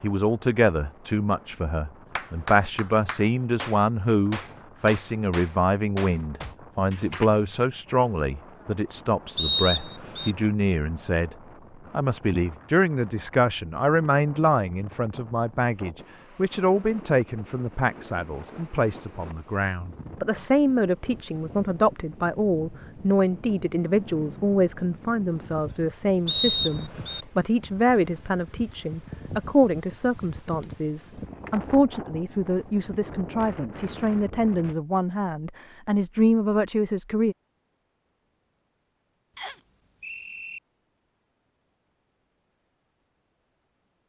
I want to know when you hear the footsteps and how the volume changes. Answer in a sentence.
The footsteps can't be heard in this clip.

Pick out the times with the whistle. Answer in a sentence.
You can hear the whistle from 9.3 to 10.3 s, from 26.2 to 27.2 s and from 39.4 to 40.6 s.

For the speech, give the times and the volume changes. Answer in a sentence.
You can hear the speech from 0.0 to 37.4 s, at a steady volume.